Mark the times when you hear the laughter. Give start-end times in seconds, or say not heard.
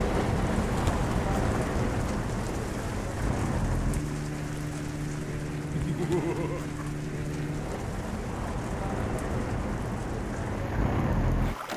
5.7-6.7.